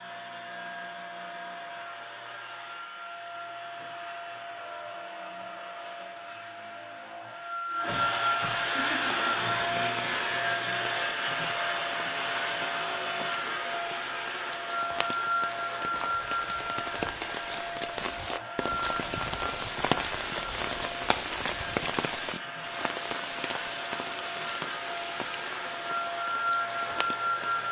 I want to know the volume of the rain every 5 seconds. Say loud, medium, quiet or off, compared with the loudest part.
off, off, medium, loud, loud, medium.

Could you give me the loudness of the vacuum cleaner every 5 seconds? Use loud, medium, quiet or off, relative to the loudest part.
medium, loud, loud, loud, medium, loud.